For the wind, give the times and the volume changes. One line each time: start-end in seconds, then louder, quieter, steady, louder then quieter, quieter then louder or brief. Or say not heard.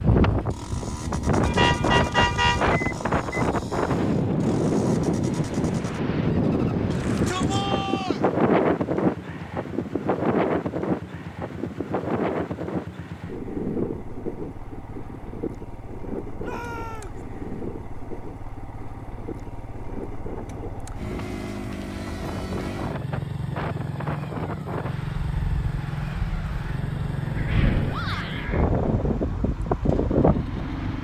0.0-30.9 quieter then louder.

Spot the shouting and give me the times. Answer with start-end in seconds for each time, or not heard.
6.9-8.2, 16.4-17.2, 27.9-28.4.